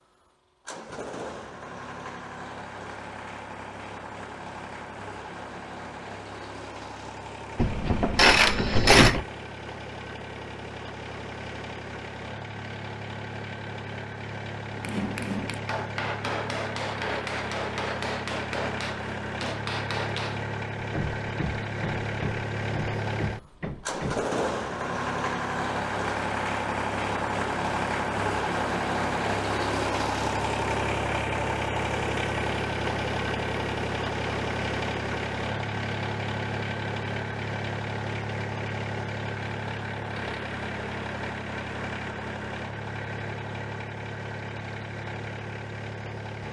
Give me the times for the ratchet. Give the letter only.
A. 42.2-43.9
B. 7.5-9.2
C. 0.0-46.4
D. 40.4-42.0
B.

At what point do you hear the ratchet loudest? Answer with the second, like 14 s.
9 s.